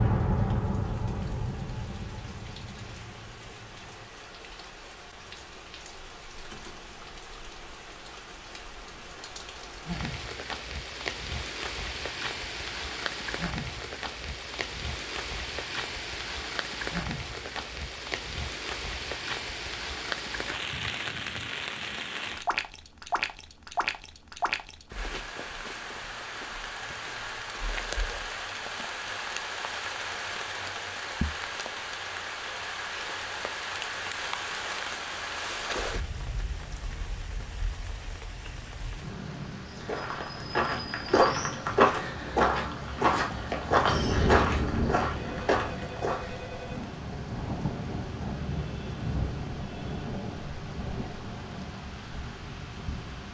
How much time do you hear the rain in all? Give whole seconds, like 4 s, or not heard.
53 s.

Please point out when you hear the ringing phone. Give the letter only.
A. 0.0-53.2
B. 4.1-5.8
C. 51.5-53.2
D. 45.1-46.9
D.